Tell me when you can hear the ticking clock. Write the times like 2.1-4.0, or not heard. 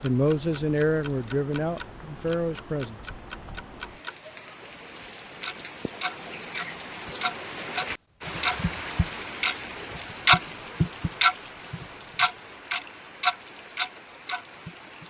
0.0-4.2, 5.4-15.0.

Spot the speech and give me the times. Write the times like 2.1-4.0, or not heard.
0.0-3.0.